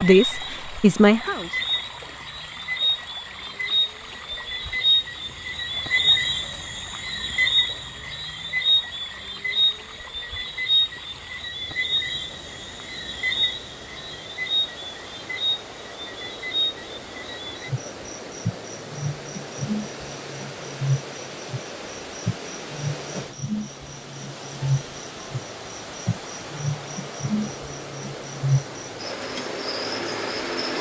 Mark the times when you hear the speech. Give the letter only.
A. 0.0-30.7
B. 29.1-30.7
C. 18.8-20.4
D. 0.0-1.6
D.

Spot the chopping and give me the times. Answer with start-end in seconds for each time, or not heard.
not heard.